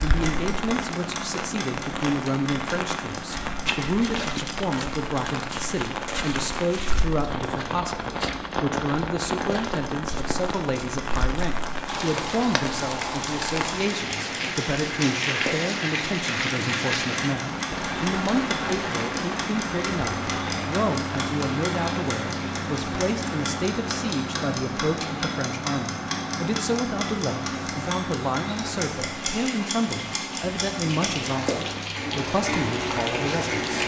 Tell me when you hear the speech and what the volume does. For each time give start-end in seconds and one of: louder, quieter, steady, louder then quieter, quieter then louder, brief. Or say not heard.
0.0-33.8 steady.